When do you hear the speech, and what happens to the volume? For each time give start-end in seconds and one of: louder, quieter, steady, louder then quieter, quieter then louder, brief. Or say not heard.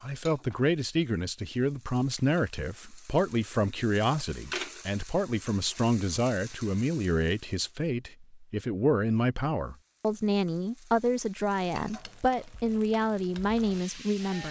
0.0-14.4 steady.